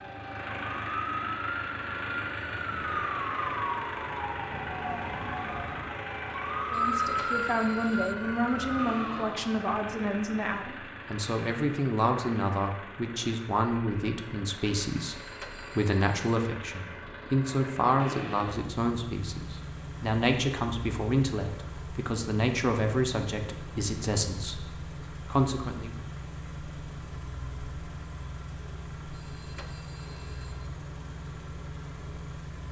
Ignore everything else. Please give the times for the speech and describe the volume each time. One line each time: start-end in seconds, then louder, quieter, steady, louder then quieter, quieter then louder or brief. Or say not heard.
6.7-25.9 steady.